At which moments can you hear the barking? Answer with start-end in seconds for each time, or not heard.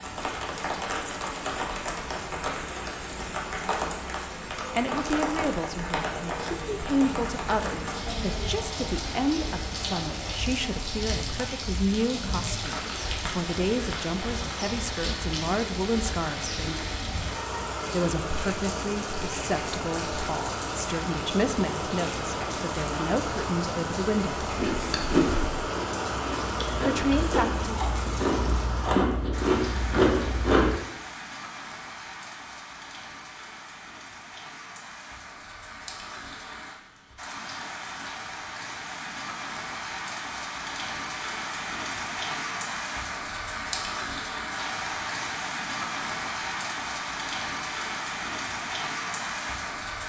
not heard.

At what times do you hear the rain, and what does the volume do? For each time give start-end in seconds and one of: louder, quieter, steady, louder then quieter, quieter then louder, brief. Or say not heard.
0.0-50.0 quieter then louder.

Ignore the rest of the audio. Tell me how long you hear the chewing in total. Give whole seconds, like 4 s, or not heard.
6 s.